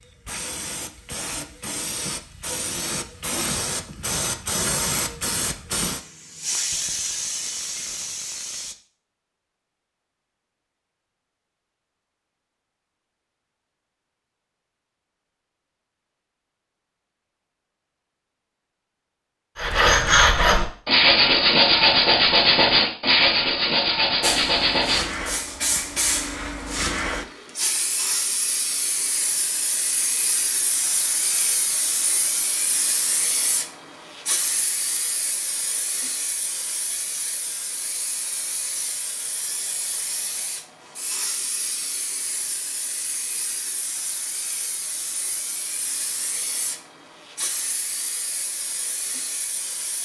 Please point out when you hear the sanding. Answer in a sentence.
You can hear the sanding from 19.6 to 25.6 s.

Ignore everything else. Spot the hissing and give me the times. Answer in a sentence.
The hissing can be heard from 0.0 to 8.8 s and from 24.2 to 49.9 s.